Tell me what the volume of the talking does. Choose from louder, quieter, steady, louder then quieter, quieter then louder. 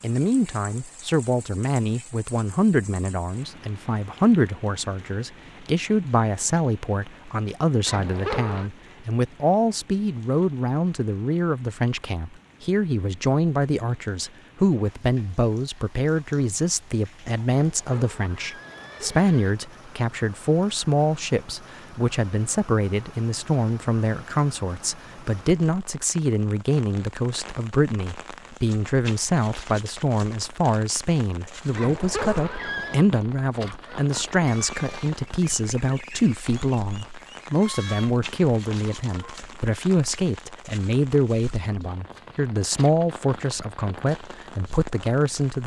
steady.